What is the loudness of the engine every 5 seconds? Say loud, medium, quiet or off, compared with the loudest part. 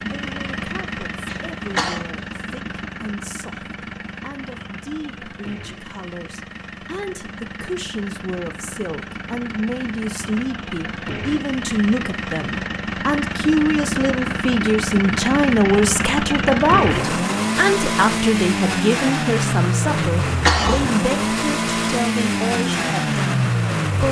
medium, quiet, medium, loud, loud.